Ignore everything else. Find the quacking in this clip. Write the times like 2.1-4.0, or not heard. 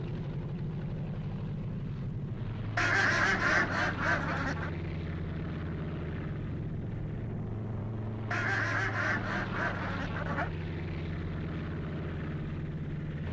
2.8-4.7, 8.3-10.5.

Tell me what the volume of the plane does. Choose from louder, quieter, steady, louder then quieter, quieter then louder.
steady.